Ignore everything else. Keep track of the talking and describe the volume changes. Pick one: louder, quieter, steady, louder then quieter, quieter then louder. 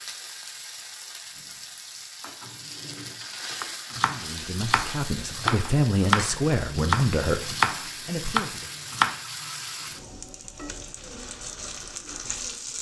louder then quieter.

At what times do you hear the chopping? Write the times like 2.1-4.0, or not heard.
3.6-9.2.